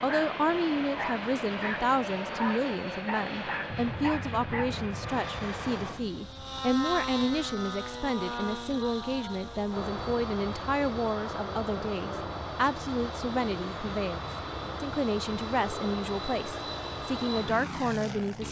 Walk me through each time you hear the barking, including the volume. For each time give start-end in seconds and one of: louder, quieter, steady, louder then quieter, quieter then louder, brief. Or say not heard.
0.0-4.8 steady.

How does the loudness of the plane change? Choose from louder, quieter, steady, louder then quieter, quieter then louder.
steady.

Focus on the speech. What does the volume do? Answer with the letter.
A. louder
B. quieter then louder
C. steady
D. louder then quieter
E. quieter
C.